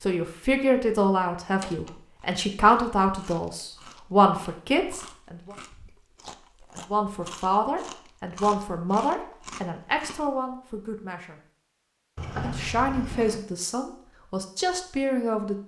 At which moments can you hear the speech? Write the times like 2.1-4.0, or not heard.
0.0-5.5, 6.8-11.4, 12.4-15.6.